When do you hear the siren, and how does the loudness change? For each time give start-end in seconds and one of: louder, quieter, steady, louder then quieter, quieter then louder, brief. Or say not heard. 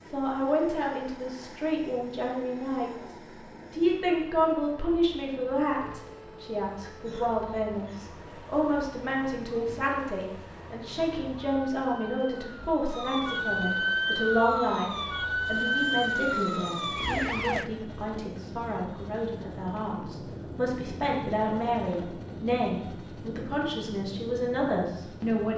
6.0-17.7 louder.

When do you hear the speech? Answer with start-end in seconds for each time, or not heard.
0.0-25.5.